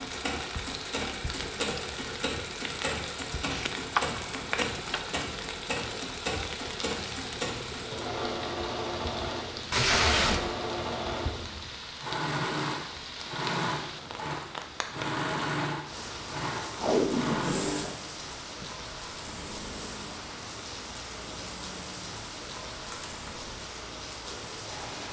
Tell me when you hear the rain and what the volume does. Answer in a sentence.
The rain can be heard from 0.0 to 25.0 s, at a steady volume.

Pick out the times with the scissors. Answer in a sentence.
The scissors can be heard from 3.5 to 5.1 s.